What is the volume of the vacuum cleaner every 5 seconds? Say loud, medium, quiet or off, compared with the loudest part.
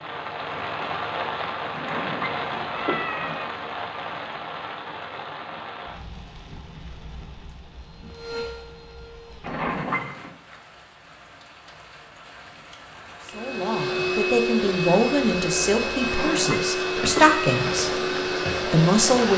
off, quiet, loud, loud.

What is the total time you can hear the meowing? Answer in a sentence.
The meowing can be heard for 4 seconds in total.